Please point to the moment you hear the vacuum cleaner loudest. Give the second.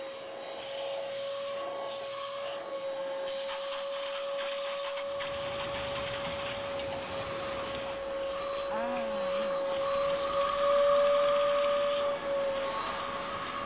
11 s.